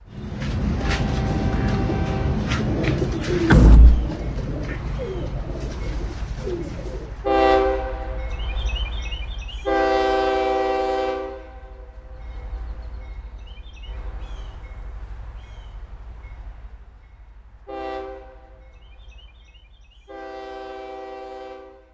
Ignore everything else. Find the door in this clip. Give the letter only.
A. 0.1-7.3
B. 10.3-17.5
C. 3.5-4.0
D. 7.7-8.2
C.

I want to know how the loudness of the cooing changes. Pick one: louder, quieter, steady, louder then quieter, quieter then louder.
quieter.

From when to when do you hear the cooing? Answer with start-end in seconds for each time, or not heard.
0.1-7.3.